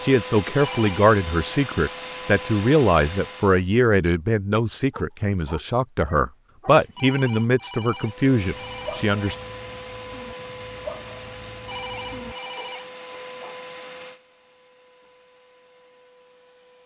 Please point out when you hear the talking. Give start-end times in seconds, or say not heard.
0.0-9.3.